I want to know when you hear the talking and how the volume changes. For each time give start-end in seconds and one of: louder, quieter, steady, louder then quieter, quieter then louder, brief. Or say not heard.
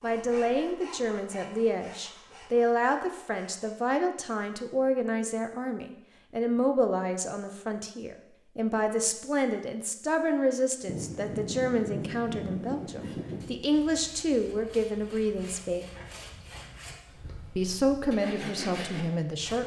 0.0-15.8 steady
17.6-19.6 brief.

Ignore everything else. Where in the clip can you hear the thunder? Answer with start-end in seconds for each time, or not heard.
10.8-13.7.